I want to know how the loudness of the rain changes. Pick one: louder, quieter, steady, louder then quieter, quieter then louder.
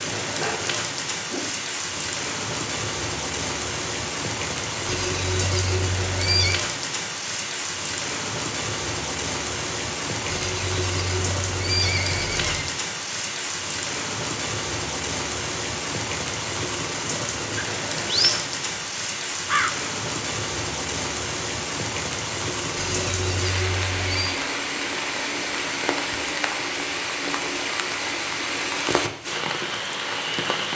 steady.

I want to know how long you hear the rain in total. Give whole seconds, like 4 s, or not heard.
31 s.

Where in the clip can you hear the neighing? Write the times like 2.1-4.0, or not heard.
4.8-6.6, 10.3-12.7, 22.8-24.4.